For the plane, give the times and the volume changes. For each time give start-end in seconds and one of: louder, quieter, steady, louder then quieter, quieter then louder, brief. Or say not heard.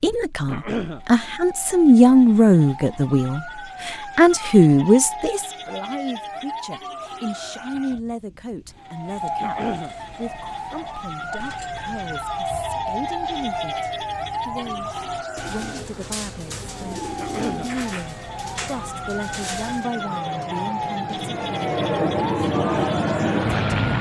18.4-23.9 louder.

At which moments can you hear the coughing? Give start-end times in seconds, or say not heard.
0.5-1.0, 9.4-9.9, 17.1-17.7.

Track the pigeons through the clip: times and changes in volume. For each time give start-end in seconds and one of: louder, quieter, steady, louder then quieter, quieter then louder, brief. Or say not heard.
9.1-19.9 steady.